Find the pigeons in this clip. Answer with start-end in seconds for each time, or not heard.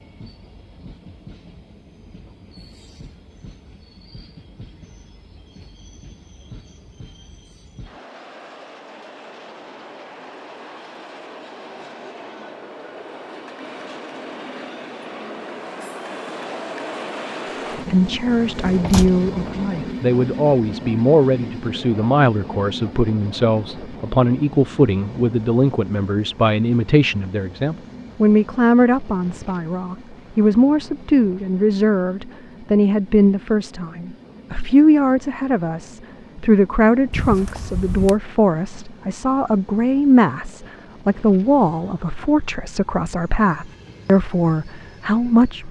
not heard.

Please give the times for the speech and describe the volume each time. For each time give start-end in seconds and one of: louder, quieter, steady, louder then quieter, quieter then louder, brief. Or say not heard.
17.9-45.6 steady.